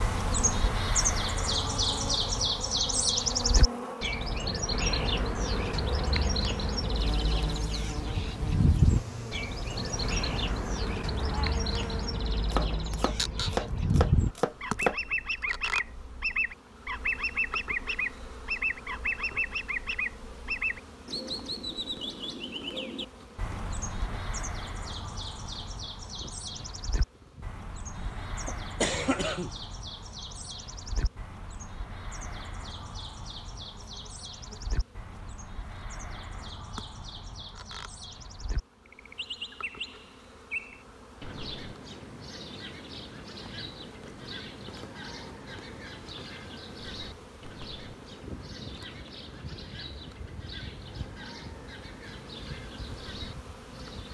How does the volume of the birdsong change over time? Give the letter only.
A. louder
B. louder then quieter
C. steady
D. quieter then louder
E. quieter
E.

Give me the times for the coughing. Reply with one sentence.
The coughing can be heard from 27.9 to 29.5 s.